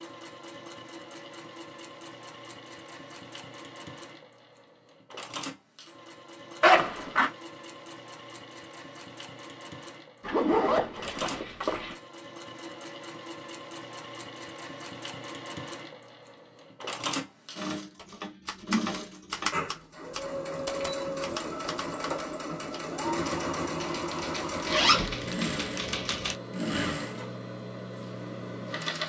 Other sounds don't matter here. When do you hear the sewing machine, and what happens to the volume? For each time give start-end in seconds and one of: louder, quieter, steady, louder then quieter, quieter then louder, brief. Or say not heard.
0.0-29.0 louder.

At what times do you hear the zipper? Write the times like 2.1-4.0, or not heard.
6.6-7.3, 10.2-11.9, 24.6-25.1.